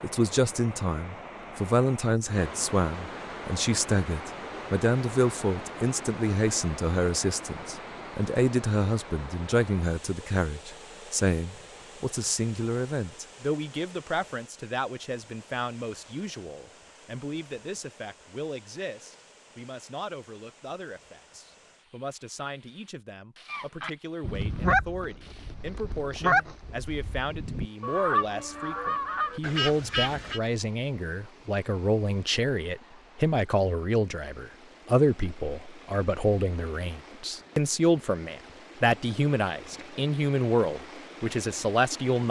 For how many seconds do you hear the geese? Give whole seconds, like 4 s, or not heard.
7 s.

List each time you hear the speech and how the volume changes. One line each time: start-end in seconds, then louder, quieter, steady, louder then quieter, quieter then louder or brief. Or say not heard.
0.0-42.2 quieter then louder.